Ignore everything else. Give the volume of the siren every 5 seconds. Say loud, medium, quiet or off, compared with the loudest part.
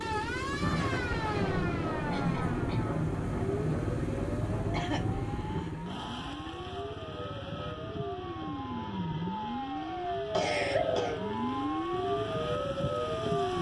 medium, medium, loud.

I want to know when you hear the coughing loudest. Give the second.
11 s.